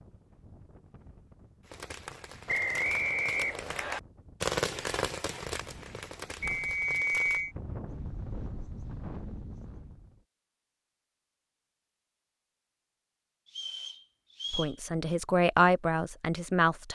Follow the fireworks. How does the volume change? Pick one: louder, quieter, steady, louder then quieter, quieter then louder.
louder then quieter.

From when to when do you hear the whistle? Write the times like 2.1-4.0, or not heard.
2.5-4.0, 6.4-7.5, 13.5-14.8.